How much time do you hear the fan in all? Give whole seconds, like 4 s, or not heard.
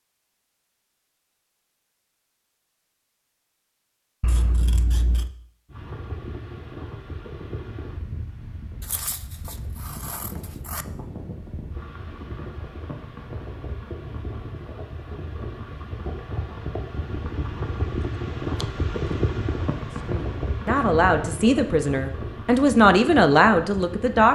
19 s.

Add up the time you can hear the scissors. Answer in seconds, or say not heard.
3 s.